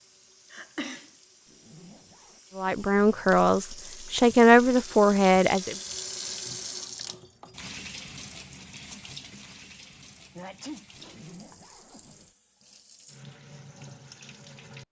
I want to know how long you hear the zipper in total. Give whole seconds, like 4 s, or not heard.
2 s.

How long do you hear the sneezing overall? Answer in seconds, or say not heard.
2 s.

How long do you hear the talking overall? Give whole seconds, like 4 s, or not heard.
3 s.